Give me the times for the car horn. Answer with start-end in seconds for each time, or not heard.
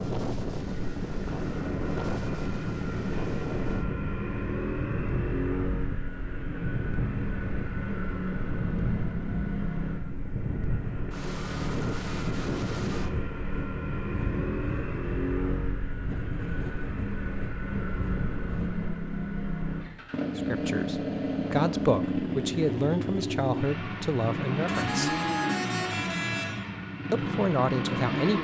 24.6-26.6.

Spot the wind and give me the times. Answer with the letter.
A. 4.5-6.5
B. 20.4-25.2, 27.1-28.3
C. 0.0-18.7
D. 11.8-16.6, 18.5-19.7
C.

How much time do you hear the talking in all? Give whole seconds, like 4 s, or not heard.
6 s.